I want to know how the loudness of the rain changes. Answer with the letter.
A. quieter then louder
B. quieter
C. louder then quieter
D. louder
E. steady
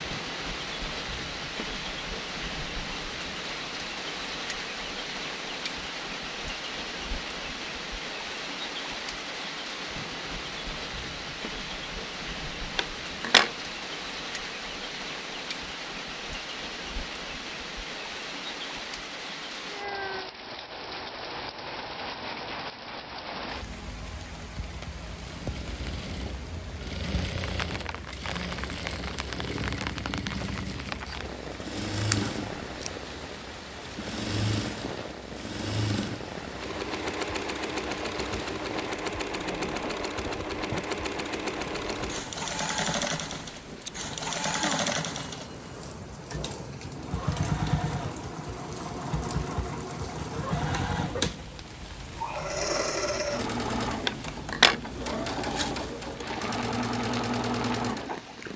B.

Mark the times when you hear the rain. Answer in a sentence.
The rain can be heard from 0.0 to 58.5 s.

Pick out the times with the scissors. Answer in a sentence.
You can hear the scissors from 12.8 to 13.5 s, from 31.9 to 32.9 s and from 54.0 to 54.8 s.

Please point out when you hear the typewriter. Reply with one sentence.
You can't hear the typewriter here.